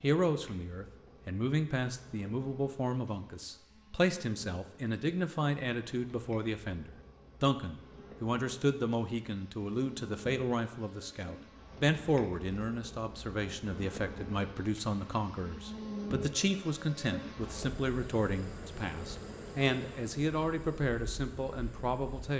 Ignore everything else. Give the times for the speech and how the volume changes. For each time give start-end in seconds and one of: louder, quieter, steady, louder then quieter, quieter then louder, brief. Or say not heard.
0.0-22.3 steady.